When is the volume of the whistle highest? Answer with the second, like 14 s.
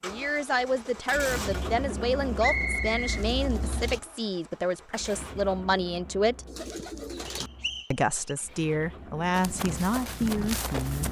3 s.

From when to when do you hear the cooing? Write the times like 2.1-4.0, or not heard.
3.0-4.0, 6.5-7.5.